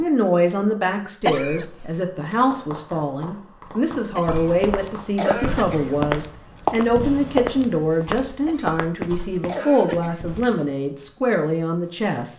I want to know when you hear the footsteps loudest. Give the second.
7 s.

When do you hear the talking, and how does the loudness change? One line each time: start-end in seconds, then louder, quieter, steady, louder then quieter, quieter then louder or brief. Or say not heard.
0.0-12.3 steady.